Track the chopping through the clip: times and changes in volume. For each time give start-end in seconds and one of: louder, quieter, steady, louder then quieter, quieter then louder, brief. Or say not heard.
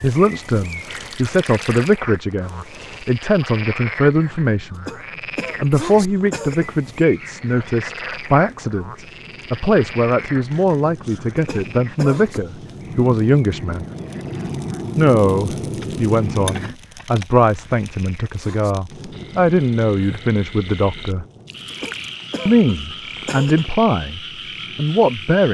not heard.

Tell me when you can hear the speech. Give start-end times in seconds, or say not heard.
0.0-4.9, 5.6-13.8, 14.9-21.2, 22.4-25.4.